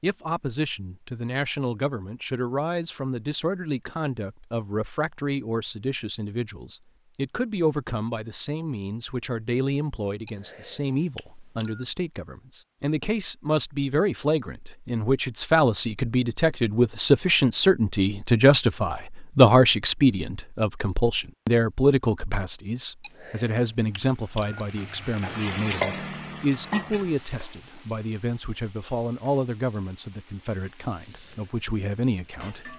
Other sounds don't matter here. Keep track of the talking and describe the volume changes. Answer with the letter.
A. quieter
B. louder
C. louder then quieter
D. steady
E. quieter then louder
C.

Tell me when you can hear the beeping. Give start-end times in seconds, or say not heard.
10.2-11.8, 23.0-24.6.